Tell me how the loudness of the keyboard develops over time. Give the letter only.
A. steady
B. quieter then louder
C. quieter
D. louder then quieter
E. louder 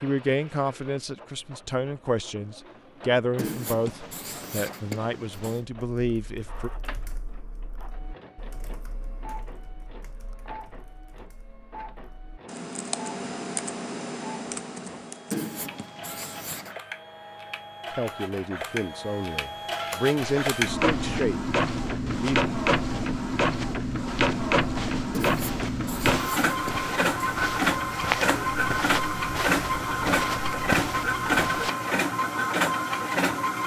B.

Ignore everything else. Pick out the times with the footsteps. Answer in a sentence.
The footsteps can be heard from 20.1 to 31.8 s.